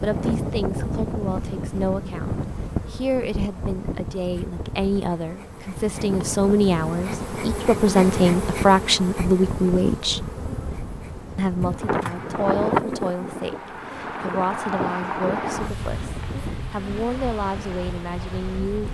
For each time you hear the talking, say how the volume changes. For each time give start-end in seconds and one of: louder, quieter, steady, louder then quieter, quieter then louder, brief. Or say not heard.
0.0-10.2 louder
11.3-18.9 steady.